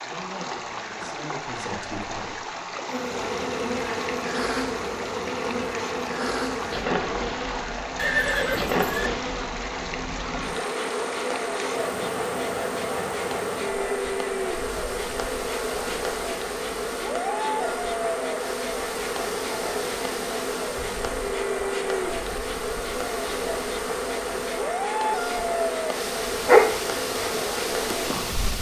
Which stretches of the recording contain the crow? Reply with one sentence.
The crow can't be heard in this clip.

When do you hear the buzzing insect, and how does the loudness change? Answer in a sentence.
The buzzing insect can be heard from 2.9 to 28.5 s, at a steady volume.